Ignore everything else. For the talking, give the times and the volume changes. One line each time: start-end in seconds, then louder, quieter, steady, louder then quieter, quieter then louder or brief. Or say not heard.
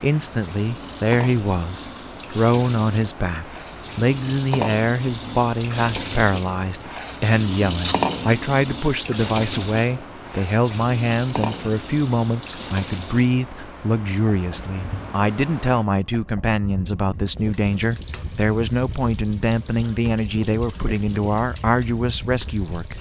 0.0-22.9 steady.